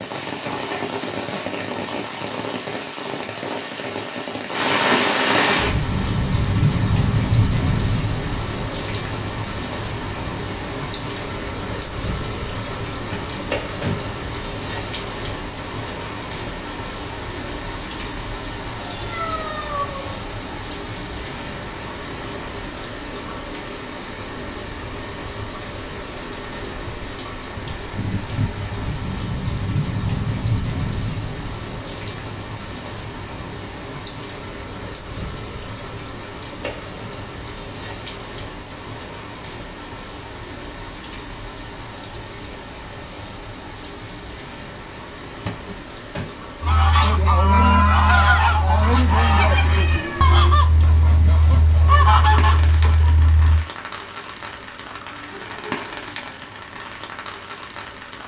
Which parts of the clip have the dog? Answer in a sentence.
You can't hear the dog here.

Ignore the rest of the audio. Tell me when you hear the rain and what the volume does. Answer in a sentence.
You can hear the rain from 0.0 to 58.2 s, getting quieter.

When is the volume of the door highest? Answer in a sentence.
The loudest moment of the door is at 14 seconds.